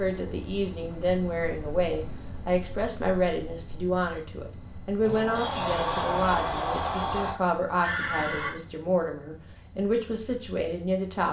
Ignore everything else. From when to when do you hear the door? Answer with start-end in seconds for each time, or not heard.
5.0-7.3.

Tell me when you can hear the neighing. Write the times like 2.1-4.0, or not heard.
7.8-8.6.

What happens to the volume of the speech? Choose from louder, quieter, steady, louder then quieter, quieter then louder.
steady.